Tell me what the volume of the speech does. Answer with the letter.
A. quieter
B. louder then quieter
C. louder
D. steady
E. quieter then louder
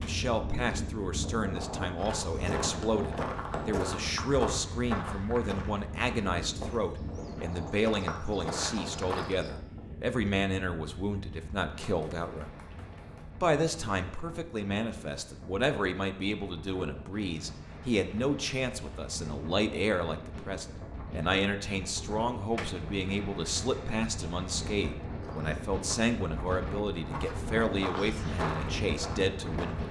D.